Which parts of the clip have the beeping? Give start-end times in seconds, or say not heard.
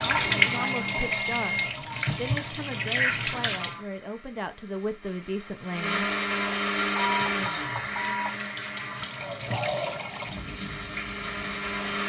0.1-1.8, 7.0-8.3.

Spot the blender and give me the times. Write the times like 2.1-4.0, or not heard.
3.6-12.0.